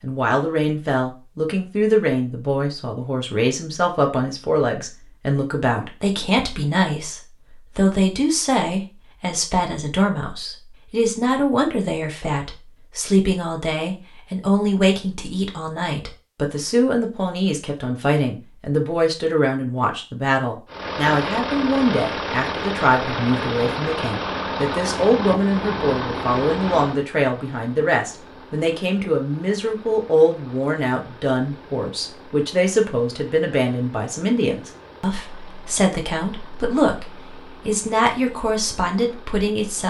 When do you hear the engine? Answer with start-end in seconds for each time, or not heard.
20.6-39.8.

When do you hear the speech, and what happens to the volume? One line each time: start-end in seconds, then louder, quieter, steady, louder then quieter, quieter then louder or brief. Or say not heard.
0.0-39.8 steady.